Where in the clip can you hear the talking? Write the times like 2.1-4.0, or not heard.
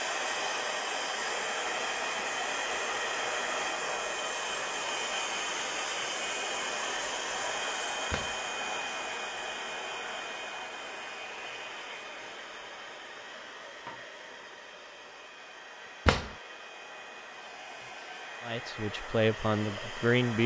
18.4-20.4.